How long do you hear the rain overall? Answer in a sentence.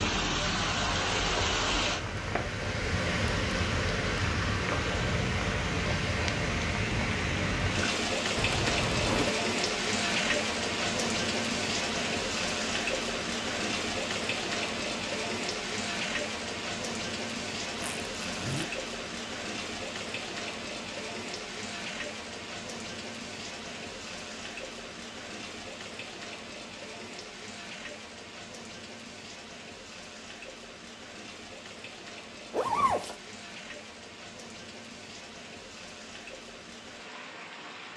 You can hear the rain for 38 seconds altogether.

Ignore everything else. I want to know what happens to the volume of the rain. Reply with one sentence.
The volume of the rain goes down.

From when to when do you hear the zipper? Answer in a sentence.
The zipper can be heard from 8.3 to 9.3 s, from 17.8 to 18.6 s and from 32.5 to 33.1 s.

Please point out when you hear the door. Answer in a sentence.
You can't hear the door here.